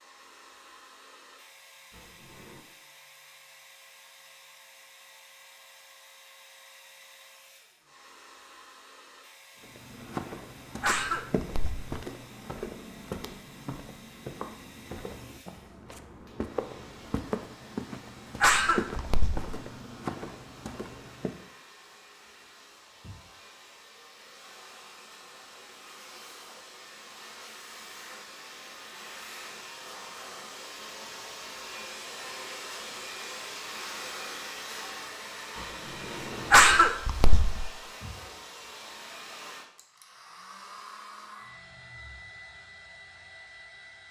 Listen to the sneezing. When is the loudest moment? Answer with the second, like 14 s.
37 s.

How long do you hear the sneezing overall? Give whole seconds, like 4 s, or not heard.
3 s.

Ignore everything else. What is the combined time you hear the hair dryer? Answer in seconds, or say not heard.
44 s.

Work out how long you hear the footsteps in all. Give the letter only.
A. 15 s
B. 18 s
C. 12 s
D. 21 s
C.